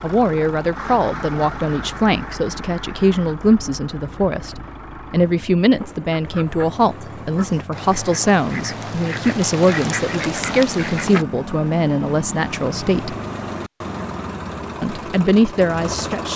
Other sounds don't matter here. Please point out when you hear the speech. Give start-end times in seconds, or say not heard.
0.0-13.2, 14.8-16.3.